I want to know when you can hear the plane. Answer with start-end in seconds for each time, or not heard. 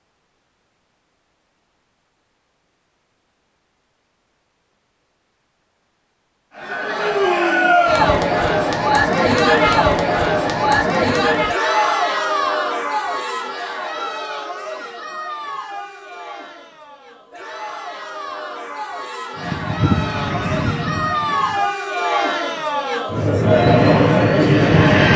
19.4-21.7, 23.4-25.1.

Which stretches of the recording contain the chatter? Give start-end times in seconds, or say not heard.
6.5-25.1.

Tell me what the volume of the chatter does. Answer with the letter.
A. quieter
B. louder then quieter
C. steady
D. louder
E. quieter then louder
E.